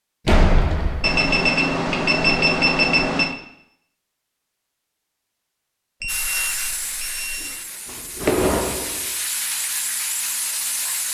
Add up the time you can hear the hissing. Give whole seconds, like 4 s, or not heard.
5 s.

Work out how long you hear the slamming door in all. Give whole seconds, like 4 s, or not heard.
3 s.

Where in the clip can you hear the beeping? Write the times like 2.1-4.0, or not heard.
1.0-3.4, 6.0-7.5.